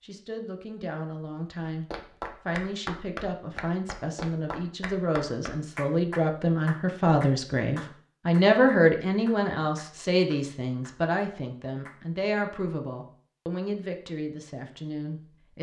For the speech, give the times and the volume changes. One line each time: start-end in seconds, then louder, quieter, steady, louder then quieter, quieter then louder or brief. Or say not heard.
0.0-15.5 louder then quieter.